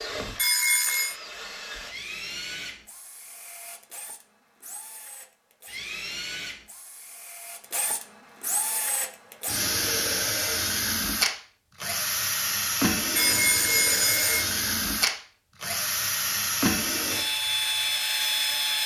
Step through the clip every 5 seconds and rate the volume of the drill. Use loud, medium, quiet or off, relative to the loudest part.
quiet, medium, loud, loud.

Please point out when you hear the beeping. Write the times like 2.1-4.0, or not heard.
0.3-1.1, 13.2-14.4.